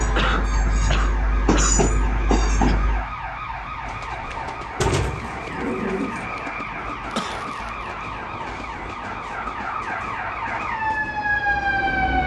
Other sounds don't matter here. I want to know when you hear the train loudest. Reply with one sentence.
The volume of the train peaks at 2 seconds.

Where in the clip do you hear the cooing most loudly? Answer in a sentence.
The volume of the cooing peaks at 5 seconds.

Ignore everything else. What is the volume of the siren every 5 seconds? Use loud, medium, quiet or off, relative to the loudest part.
medium, medium, loud.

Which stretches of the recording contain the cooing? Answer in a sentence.
The cooing can be heard from 4.8 to 6.3 s.